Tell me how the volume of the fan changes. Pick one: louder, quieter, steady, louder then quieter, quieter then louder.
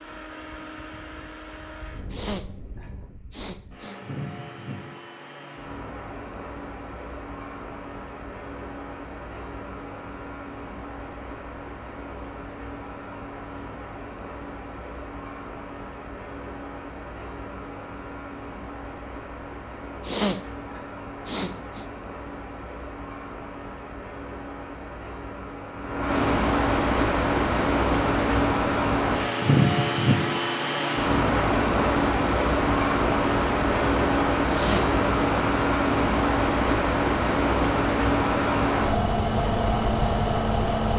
louder.